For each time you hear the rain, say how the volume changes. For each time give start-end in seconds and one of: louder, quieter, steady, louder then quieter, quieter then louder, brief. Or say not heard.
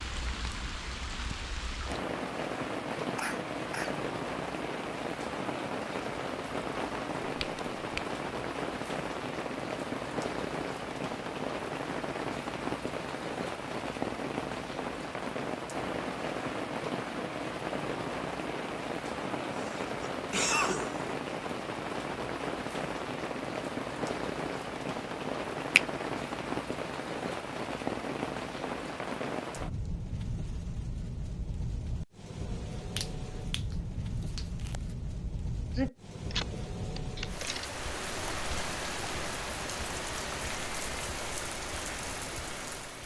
0.0-43.0 steady.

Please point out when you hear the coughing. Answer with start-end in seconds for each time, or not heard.
3.0-4.0, 19.6-21.1, 35.8-37.8.